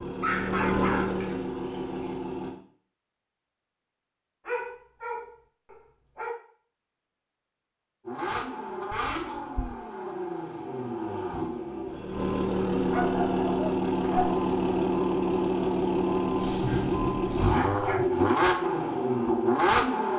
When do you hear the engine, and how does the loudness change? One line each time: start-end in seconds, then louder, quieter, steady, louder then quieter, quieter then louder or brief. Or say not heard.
0.0-2.5 brief
8.1-20.1 louder.